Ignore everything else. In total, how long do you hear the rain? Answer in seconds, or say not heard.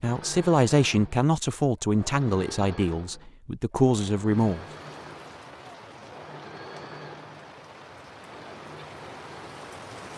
6 s.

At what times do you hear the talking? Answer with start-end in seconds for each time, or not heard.
0.0-4.7.